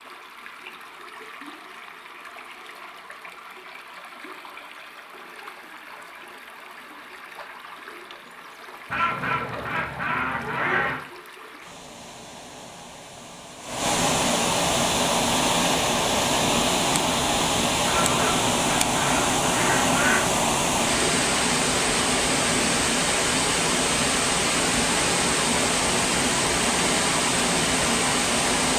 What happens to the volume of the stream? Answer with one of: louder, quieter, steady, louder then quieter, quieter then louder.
louder.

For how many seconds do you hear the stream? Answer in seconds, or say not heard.
29 s.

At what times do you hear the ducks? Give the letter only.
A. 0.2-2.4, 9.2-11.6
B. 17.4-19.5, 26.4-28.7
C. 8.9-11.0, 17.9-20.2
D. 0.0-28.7
C.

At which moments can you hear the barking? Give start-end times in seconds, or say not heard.
not heard.